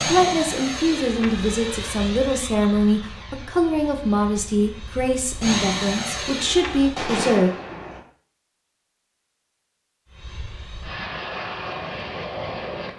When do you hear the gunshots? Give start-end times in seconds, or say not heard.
6.7-8.0.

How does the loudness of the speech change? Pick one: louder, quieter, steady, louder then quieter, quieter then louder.
steady.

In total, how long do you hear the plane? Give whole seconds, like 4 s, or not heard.
10 s.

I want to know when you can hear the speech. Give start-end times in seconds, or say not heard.
0.1-7.5.